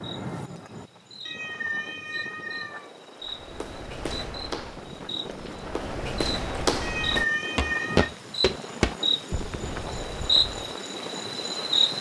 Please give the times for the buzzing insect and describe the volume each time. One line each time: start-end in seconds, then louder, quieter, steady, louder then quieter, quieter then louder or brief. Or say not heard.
0.0-11.9 louder.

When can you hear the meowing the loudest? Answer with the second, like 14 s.
7 s.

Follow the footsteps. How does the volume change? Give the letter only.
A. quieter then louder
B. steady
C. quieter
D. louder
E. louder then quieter
E.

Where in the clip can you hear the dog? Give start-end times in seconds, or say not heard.
not heard.